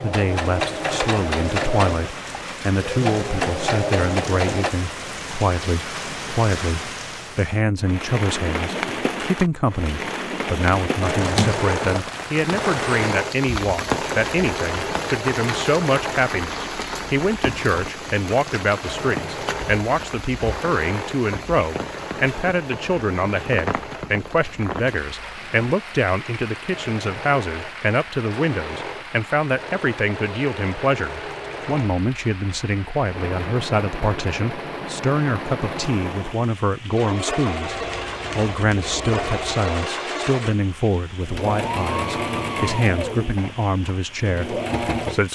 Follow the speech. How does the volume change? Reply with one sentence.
The loudness of the speech stays about the same.